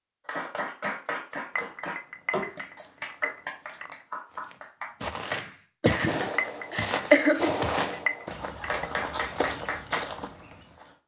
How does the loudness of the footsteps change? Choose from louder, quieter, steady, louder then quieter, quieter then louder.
quieter.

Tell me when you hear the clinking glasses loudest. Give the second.
7 s.